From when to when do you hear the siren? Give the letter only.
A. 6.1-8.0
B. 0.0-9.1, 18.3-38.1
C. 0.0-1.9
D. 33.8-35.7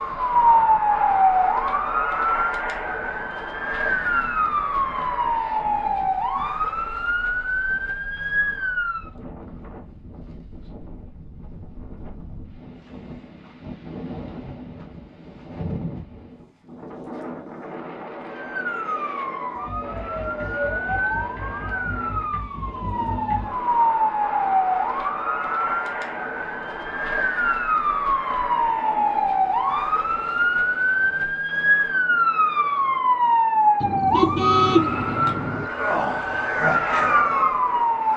B.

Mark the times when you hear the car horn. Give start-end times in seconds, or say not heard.
33.8-35.7.